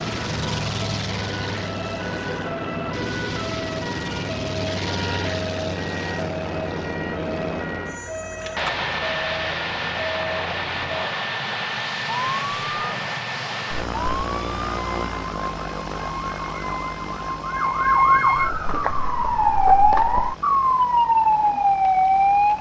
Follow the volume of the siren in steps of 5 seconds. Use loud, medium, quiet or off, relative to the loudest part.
quiet, quiet, quiet, loud, loud.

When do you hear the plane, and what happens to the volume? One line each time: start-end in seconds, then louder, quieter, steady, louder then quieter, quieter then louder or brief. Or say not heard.
0.0-22.5 quieter.